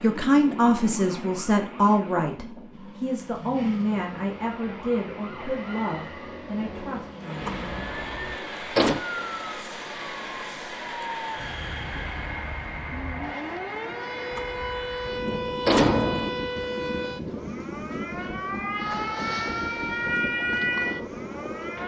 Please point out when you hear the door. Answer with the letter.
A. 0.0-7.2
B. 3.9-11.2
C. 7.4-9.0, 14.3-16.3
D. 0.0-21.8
C.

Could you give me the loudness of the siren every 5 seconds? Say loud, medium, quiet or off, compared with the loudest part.
quiet, medium, medium, loud, loud.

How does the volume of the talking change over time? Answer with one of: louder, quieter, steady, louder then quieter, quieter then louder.
quieter.